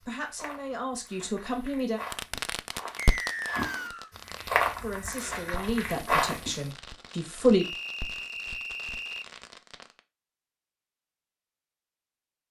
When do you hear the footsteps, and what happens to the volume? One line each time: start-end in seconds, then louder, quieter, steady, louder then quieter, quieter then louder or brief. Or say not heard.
0.0-6.6 louder.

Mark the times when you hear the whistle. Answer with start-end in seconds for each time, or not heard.
3.0-4.1, 7.5-9.2.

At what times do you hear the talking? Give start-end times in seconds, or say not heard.
0.1-2.0, 4.8-7.7.